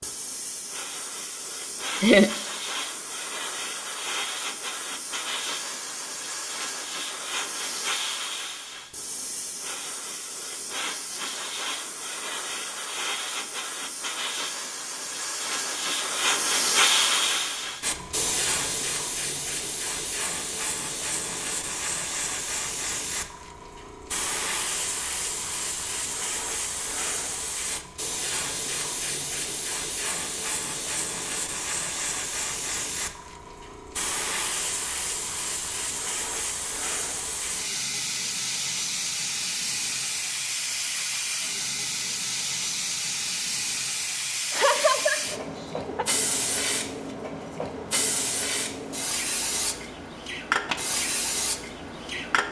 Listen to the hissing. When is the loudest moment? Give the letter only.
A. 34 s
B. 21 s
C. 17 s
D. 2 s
C.